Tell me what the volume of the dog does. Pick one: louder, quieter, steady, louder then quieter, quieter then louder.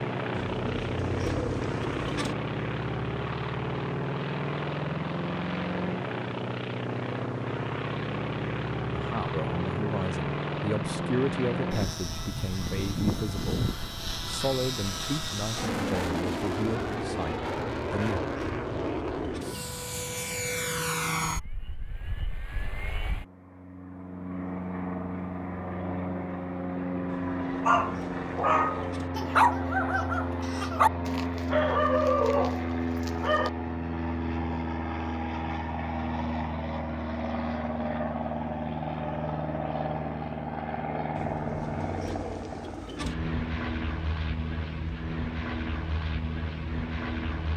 steady.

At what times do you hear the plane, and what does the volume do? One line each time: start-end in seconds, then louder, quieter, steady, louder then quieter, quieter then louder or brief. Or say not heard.
0.0-47.5 steady.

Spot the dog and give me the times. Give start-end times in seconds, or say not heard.
27.6-33.5.